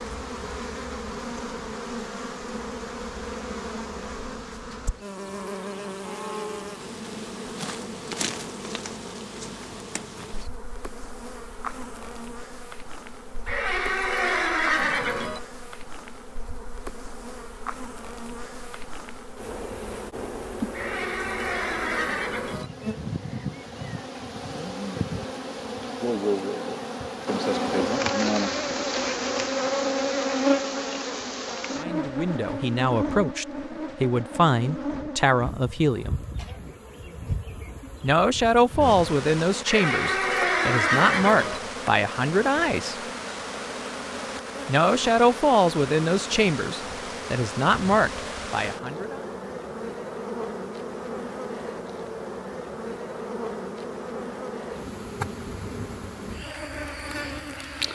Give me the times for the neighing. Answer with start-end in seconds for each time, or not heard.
13.4-15.4, 20.7-22.7, 39.6-41.6.